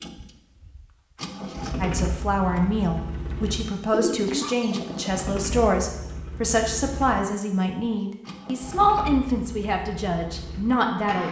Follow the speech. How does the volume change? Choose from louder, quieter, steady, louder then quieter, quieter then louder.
steady.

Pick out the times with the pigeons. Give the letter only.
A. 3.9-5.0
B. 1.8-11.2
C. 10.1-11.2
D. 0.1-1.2
A.